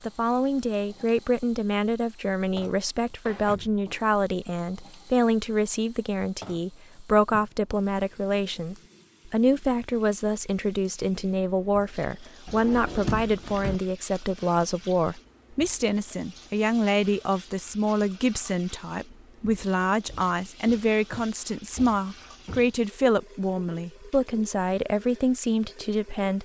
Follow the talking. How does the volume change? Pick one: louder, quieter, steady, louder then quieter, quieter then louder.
steady.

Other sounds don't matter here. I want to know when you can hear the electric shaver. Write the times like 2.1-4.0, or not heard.
not heard.